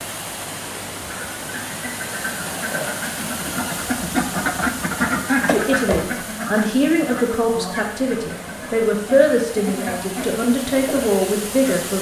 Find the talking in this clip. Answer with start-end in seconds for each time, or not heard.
5.5-11.9.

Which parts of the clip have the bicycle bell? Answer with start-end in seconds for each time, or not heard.
not heard.